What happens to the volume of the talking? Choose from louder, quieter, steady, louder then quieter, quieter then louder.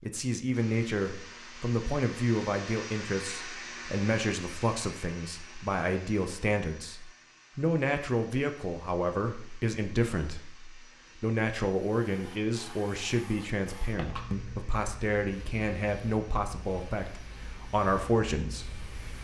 steady.